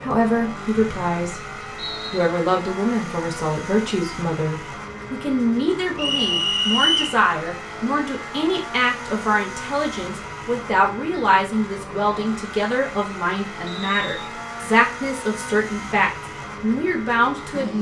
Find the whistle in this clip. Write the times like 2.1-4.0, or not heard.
0.8-2.3, 6.0-7.2, 13.7-14.2.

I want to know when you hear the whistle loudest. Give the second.
7 s.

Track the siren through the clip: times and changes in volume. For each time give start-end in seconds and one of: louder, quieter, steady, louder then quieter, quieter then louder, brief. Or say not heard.
not heard.